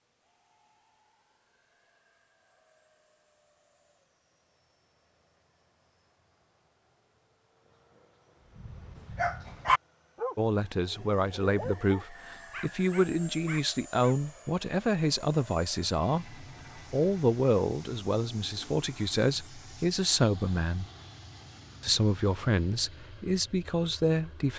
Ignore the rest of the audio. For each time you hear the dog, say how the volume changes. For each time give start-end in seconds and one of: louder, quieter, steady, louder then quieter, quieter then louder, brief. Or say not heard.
8.6-14.2 quieter.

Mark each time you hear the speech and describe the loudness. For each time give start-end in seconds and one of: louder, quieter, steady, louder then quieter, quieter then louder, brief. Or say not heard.
10.3-20.9 steady
21.8-24.5 brief.